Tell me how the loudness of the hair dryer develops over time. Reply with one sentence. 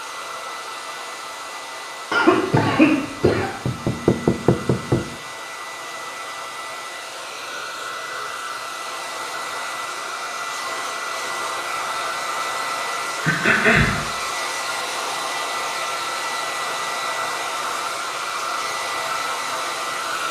The volume of the hair dryer goes up.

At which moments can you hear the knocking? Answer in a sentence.
The knocking can be heard from 3.6 to 5.2 s.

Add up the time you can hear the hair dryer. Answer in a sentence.
You can hear the hair dryer for 20 seconds altogether.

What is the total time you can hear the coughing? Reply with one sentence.
You can hear the coughing for 2 seconds altogether.